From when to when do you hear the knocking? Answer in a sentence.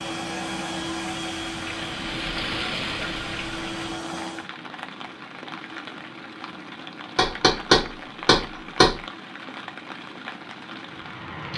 The knocking can be heard from 7.2 to 9.0 s.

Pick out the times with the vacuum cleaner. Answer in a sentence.
You can hear the vacuum cleaner from 0.0 to 4.5 s.